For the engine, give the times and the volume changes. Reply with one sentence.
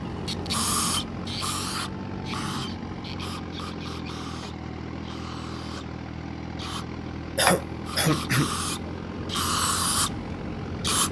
The engine can be heard from 0.0 to 11.0 s, at a steady volume.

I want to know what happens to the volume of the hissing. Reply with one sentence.
The volume of the hissing goes down, then up.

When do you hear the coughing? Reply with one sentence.
You can hear the coughing from 7.3 to 8.5 s.